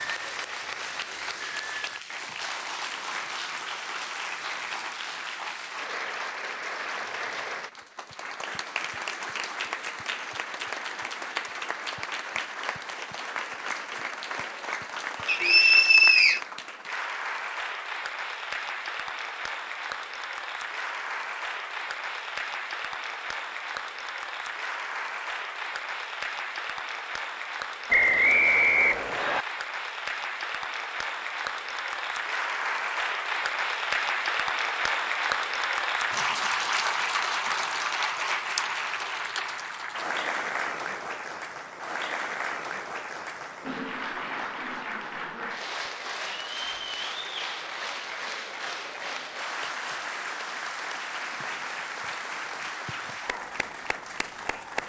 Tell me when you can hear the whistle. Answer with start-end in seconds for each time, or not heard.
15.2-16.4, 27.9-29.4.